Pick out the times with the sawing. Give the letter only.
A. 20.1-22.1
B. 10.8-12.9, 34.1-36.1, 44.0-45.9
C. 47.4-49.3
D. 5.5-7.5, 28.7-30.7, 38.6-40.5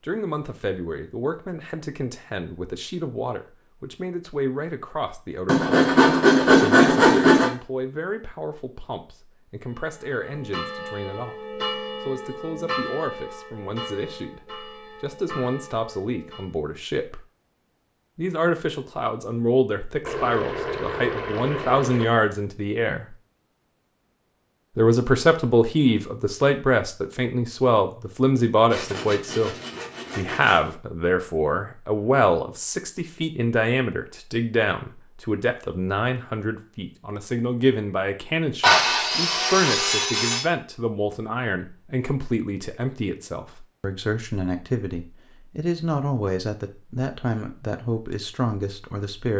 D.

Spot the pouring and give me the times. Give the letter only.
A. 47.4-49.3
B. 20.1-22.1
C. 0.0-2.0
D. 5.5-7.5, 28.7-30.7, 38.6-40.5
B.